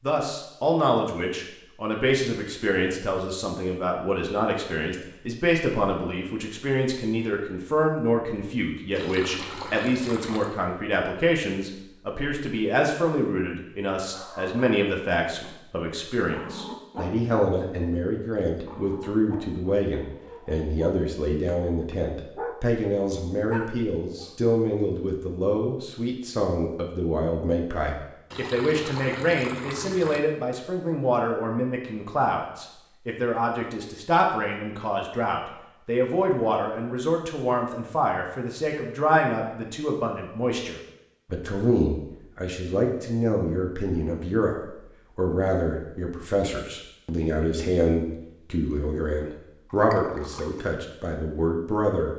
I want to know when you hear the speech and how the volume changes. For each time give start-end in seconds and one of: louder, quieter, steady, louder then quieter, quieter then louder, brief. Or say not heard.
0.0-52.1 steady.